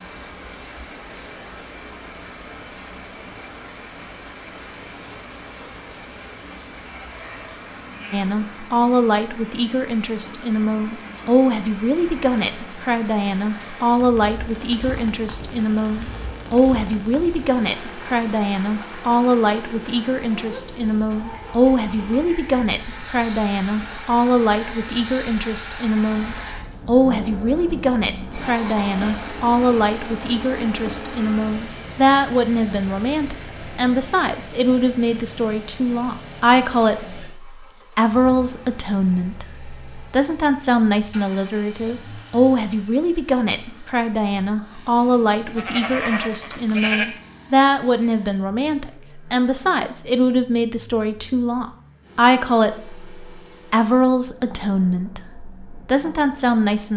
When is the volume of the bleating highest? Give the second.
47 s.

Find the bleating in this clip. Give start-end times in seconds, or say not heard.
6.8-8.2, 45.5-47.0.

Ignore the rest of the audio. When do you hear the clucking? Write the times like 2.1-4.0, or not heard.
not heard.